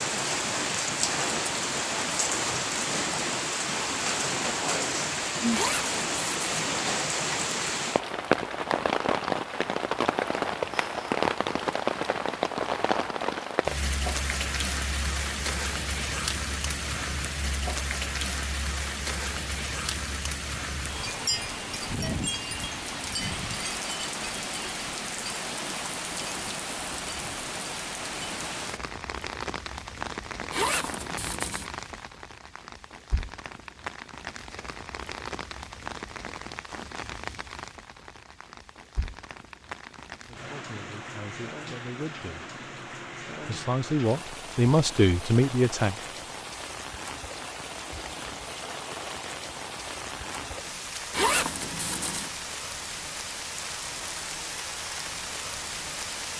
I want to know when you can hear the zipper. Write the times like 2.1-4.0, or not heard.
5.5-6.5, 30.5-31.7, 51.1-52.3.